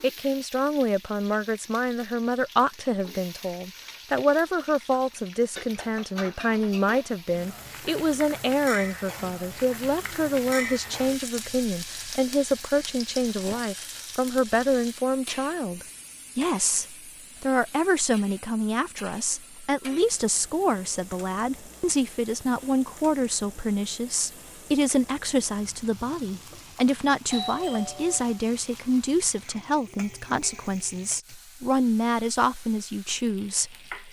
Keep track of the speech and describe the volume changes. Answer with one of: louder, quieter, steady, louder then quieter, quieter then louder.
steady.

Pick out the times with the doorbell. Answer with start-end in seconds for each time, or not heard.
27.3-28.4.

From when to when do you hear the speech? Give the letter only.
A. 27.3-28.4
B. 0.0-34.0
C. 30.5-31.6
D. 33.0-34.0
B.